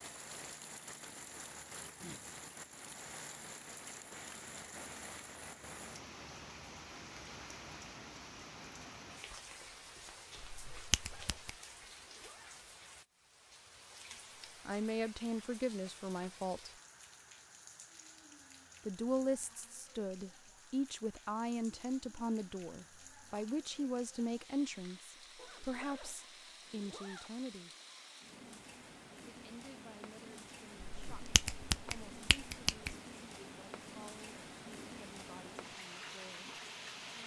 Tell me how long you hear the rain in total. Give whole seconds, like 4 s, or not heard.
37 s.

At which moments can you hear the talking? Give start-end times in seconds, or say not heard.
14.7-16.7, 18.9-27.7, 29.2-36.6.